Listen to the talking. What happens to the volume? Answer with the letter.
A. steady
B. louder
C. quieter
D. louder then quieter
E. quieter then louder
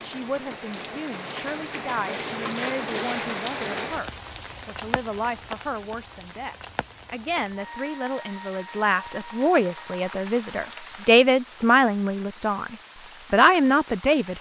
B.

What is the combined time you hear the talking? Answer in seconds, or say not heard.
14 s.